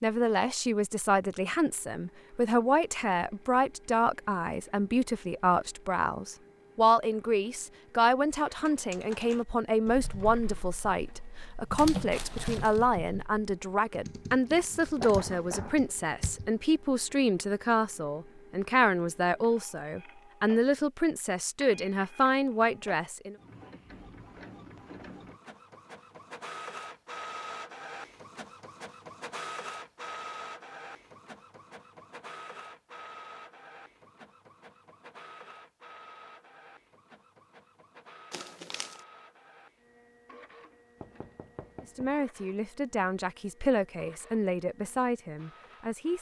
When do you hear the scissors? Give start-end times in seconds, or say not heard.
not heard.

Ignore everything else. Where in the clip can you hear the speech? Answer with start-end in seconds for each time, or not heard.
0.0-23.4, 41.8-46.1.